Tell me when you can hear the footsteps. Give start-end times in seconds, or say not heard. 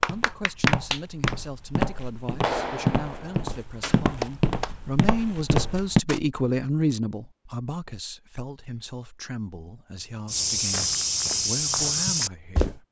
0.0-6.2, 10.2-12.8.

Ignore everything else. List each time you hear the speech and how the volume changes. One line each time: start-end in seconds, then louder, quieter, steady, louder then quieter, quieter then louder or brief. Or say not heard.
0.1-12.8 louder then quieter.